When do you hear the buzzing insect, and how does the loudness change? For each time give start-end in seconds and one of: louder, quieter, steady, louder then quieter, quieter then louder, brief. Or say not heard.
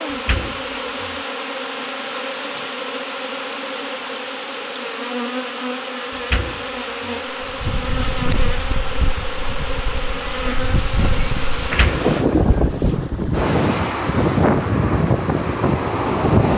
0.0-12.3 steady.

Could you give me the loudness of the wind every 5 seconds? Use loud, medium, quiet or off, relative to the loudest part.
off, quiet, loud, loud.